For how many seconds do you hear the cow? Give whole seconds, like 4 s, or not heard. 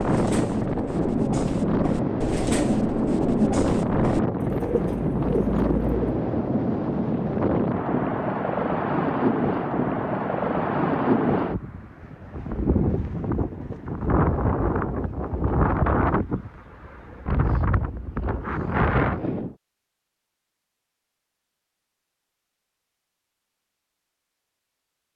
not heard.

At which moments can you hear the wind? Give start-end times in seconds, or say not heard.
0.0-19.6.